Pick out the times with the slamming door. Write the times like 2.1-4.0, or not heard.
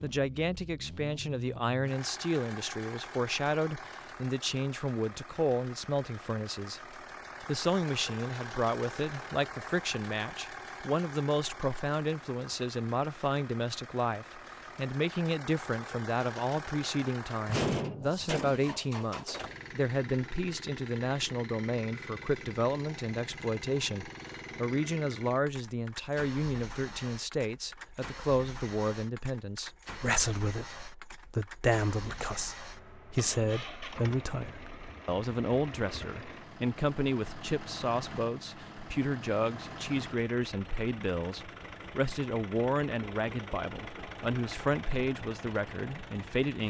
17.4-18.6.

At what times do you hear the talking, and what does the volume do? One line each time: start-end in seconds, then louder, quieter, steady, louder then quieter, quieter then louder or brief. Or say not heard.
0.0-6.8 steady
7.4-46.6 steady.